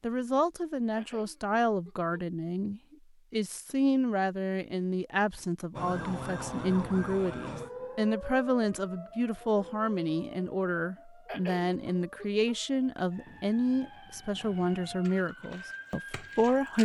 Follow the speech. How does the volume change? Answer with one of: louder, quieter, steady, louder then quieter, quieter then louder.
steady.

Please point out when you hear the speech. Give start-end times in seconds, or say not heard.
0.0-16.7.